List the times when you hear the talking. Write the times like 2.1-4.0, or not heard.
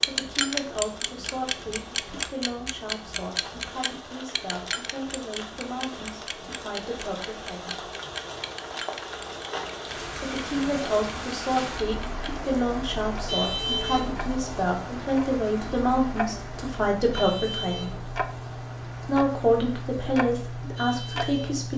0.0-7.8, 10.2-18.0, 19.0-21.7.